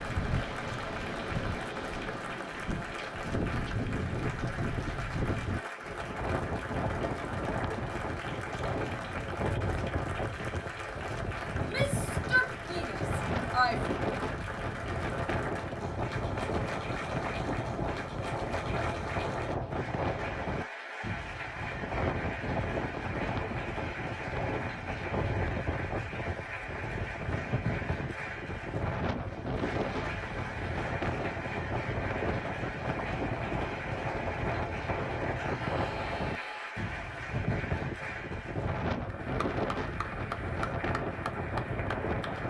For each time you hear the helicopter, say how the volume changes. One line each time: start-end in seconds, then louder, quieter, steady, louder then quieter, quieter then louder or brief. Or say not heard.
not heard.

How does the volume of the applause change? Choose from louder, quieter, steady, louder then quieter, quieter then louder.
steady.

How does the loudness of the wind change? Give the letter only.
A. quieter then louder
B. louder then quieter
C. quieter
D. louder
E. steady
E.